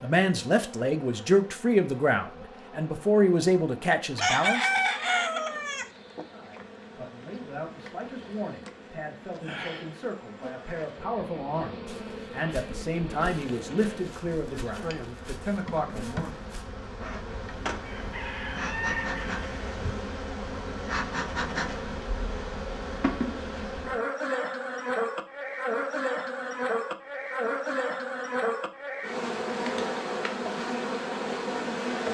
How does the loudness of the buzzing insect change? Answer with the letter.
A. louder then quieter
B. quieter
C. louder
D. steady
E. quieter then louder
C.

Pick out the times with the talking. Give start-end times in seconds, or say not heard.
0.0-4.7, 6.2-16.4.